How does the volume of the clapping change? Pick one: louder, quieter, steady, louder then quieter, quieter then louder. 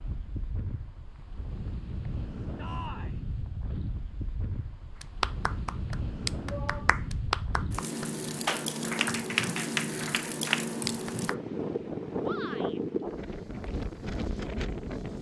steady.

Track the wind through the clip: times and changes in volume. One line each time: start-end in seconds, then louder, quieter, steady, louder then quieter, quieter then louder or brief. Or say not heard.
0.0-15.1 louder.